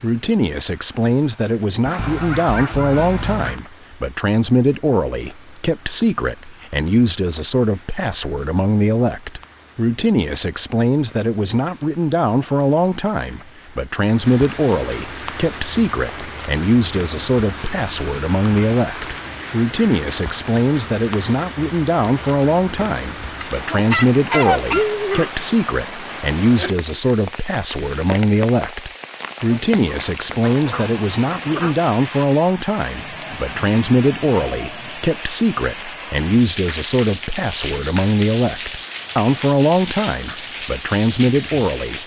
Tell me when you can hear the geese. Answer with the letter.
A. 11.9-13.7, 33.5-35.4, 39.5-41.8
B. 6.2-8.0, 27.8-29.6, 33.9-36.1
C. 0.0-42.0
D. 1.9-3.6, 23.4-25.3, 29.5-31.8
D.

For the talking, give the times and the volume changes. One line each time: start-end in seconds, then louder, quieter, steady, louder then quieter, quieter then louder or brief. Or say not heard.
0.0-42.0 steady.